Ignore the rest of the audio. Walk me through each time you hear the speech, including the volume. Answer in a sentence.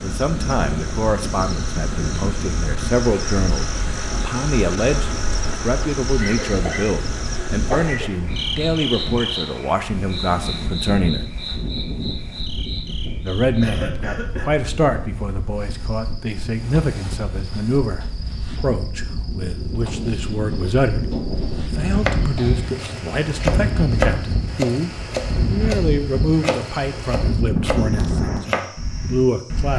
You can hear the speech from 0.0 to 11.2 s, at a steady volume; and from 13.2 to 29.7 s, at a steady volume.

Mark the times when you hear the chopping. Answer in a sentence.
The chopping can be heard from 22.1 to 28.7 s.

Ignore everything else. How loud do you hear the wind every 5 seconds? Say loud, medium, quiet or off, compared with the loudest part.
medium, medium, medium, medium, loud, loud.